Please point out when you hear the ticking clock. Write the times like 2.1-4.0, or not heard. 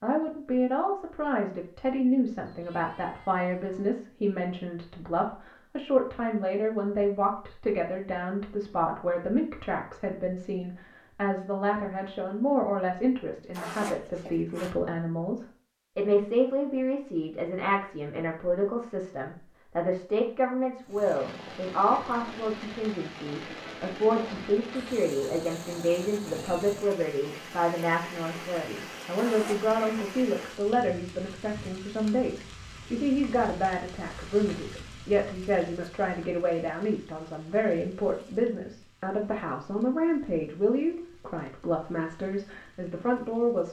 not heard.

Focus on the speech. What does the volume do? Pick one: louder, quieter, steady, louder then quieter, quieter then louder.
steady.